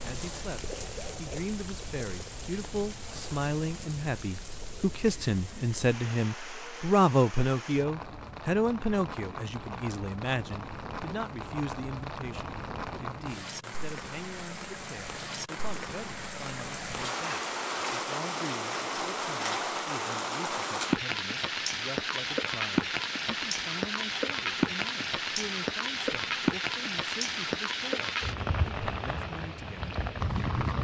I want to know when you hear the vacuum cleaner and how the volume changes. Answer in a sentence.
The vacuum cleaner can't be heard in this clip.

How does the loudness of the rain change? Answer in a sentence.
The volume of the rain goes up.